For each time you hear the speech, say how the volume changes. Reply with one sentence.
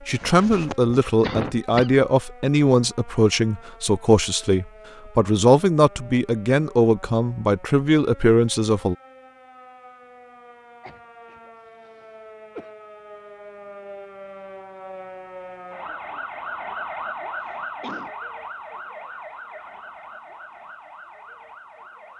You can hear the speech from 0.1 to 8.9 s, at a steady volume.